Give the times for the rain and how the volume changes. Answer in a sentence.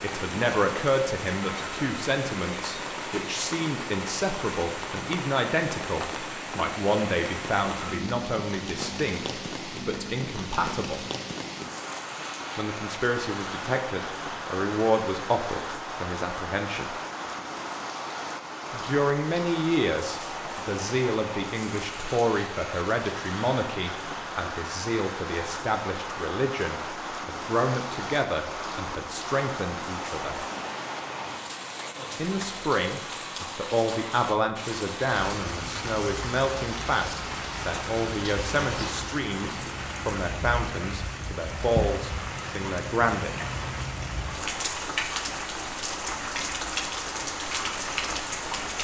You can hear the rain from 0.0 to 48.7 s, at a steady volume.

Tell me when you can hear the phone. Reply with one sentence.
The phone can't be heard in this clip.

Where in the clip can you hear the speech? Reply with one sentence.
The speech can be heard from 0.0 to 11.1 s, from 12.6 to 16.9 s, from 18.7 to 30.4 s and from 32.1 to 43.3 s.